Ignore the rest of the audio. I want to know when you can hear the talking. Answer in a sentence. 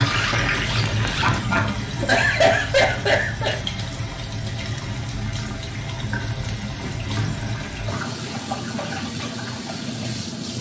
You can't hear the talking here.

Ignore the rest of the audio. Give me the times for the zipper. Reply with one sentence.
The zipper can be heard from 0.1 to 1.5 s.